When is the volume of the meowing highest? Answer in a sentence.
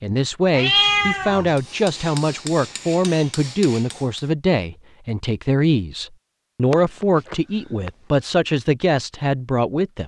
The volume of the meowing peaks at 1 second.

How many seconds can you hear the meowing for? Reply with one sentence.
The meowing can be heard for 2 seconds in total.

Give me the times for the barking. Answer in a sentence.
You can't hear the barking here.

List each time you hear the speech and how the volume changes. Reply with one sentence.
The speech can be heard from 0.0 to 10.0 s, at a steady volume.